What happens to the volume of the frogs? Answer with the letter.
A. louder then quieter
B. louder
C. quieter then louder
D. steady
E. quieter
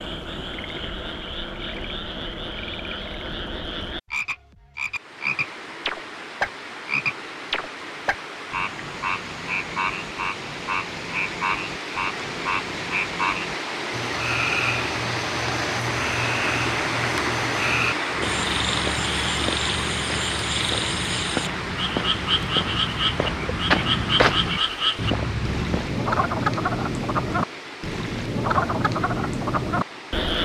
B.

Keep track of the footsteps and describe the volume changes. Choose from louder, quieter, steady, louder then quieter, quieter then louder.
louder.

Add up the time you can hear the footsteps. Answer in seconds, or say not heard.
8 s.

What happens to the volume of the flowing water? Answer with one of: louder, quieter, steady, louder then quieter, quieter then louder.
louder then quieter.